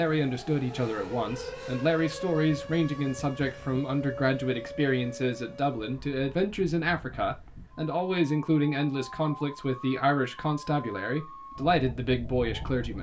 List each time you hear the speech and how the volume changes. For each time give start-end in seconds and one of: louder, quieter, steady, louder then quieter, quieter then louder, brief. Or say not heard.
0.0-12.9 steady.